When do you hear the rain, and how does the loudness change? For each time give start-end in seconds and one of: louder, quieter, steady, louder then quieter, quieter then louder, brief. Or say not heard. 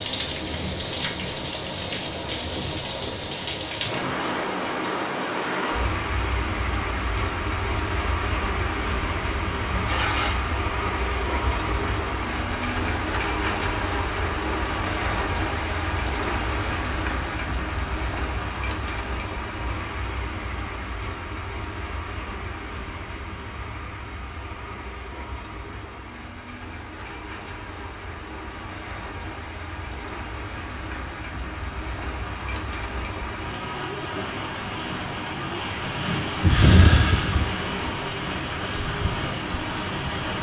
0.0-40.3 quieter then louder.